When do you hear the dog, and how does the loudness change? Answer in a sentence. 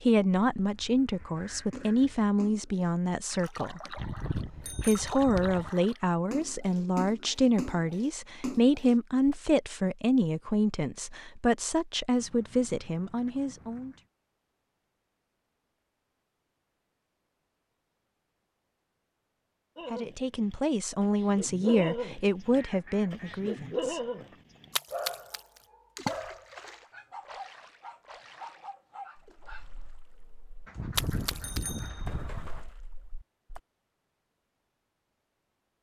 The dog can be heard from 19.8 to 29.9 s, getting quieter.